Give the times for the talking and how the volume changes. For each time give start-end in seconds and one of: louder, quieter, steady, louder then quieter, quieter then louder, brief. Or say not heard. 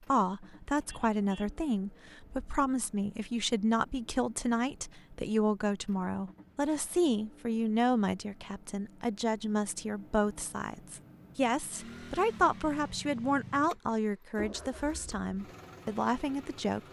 0.1-16.8 steady.